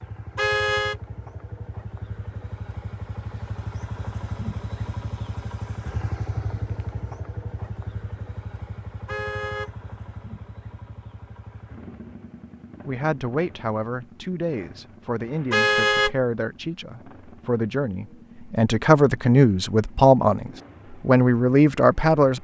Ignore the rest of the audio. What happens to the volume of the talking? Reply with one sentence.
The volume of the talking goes up.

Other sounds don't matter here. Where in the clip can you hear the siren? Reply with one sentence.
You can't hear the siren here.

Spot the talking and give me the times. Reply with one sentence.
The talking can be heard from 12.8 to 22.4 s.